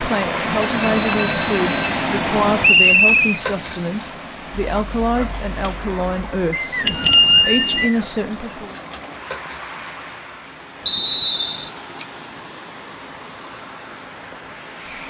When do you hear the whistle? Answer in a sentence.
The whistle can be heard from 2.6 to 3.4 s, from 6.5 to 8.1 s and from 10.8 to 11.7 s.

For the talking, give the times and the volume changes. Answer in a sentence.
You can hear the talking from 0.0 to 8.8 s, at a steady volume.